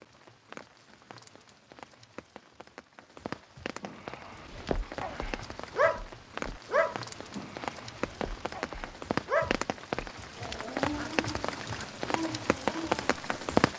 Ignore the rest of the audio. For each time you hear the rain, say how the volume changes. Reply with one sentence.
You can hear the rain from 0.0 to 13.7 s, getting louder.